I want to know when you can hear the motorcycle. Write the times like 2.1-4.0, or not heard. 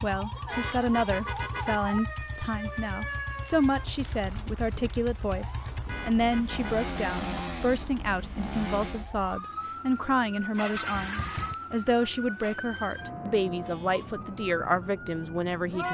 0.0-9.1, 10.5-12.6.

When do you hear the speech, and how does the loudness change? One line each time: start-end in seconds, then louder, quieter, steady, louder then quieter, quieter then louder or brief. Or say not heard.
0.0-15.9 steady.